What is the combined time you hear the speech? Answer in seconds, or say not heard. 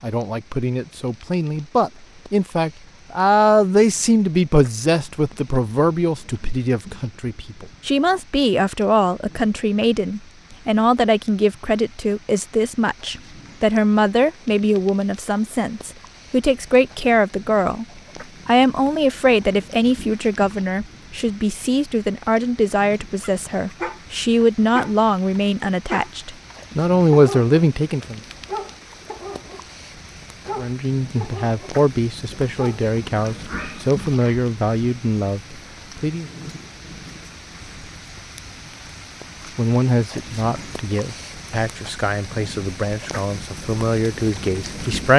39 s.